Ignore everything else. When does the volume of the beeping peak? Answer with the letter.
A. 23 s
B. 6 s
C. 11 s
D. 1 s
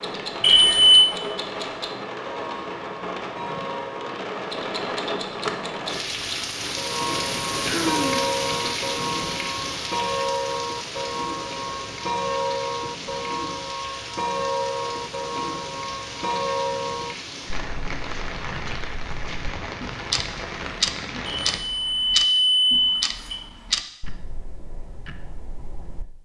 D.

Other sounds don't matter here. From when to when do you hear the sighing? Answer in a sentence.
The sighing can be heard from 7.7 to 8.3 s.